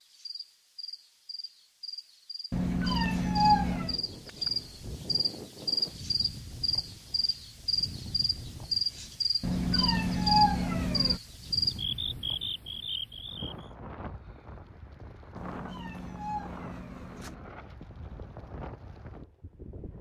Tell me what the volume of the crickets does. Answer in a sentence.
The volume of the crickets goes up.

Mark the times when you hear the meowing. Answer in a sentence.
You can hear the meowing from 2.5 to 4.0 s, from 9.4 to 11.2 s and from 15.3 to 17.4 s.